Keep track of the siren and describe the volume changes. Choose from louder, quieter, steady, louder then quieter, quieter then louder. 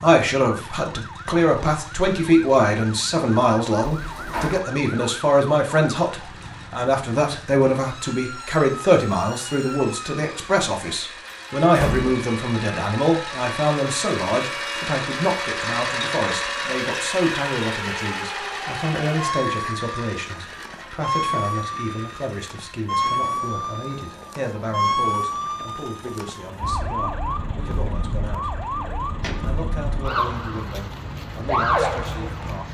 louder.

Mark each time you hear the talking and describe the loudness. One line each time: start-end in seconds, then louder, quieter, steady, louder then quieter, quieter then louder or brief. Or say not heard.
0.0-32.6 quieter.